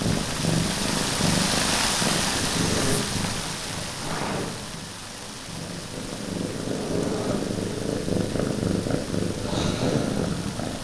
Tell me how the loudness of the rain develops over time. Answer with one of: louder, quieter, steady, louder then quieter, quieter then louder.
quieter.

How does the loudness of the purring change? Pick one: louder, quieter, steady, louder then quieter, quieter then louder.
quieter then louder.